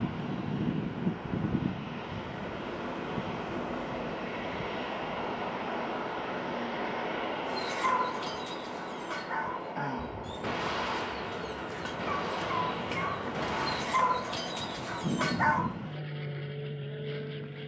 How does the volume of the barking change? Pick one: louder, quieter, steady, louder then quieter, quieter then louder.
quieter then louder.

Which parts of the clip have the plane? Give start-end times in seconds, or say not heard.
0.0-17.6.